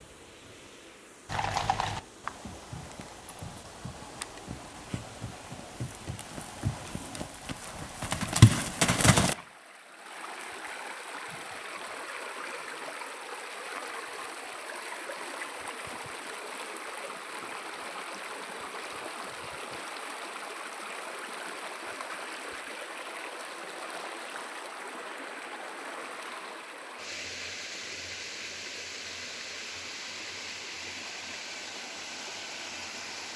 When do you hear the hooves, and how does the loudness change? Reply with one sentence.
You can hear the hooves from 1.2 to 9.3 s, getting quieter then louder.